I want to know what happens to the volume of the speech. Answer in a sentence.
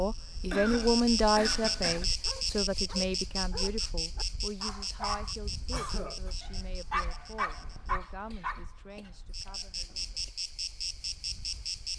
The loudness of the speech goes down.